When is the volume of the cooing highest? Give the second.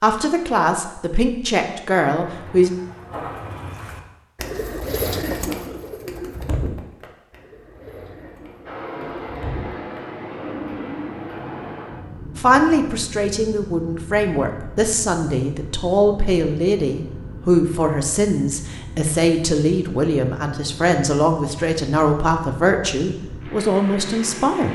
5 s.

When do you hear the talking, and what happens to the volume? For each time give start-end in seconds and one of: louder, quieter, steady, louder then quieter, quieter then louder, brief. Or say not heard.
0.0-2.7 brief
12.3-24.7 steady.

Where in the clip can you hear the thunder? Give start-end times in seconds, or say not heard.
not heard.